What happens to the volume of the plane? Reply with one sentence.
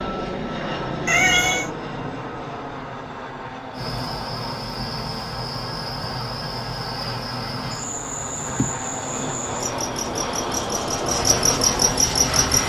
The volume of the plane goes down, then up.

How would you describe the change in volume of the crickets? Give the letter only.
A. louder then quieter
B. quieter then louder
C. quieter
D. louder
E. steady
D.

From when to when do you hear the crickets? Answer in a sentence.
The crickets can be heard from 3.7 to 12.6 s.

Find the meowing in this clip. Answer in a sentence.
You can hear the meowing from 1.1 to 1.7 s.